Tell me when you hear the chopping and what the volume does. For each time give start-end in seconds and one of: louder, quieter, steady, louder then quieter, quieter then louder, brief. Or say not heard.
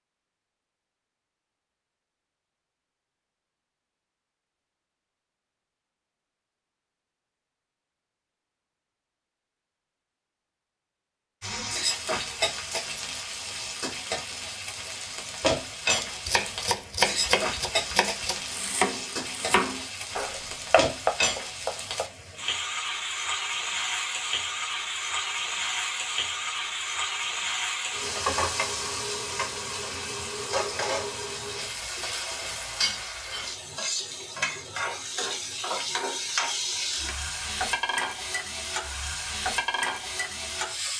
15.9-22.1 quieter then louder.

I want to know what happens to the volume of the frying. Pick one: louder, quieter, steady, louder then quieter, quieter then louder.
steady.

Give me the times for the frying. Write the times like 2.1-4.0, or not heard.
11.4-40.9.